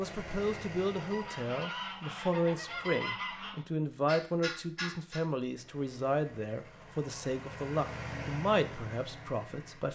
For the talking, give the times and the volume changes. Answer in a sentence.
The talking can be heard from 0.0 to 9.9 s, at a steady volume.